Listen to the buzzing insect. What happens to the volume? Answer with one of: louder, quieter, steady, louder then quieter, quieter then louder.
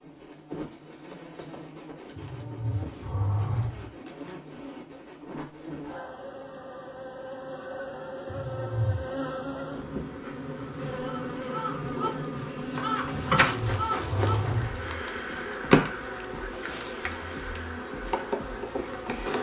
louder.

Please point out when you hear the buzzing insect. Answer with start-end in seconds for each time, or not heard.
0.0-19.3.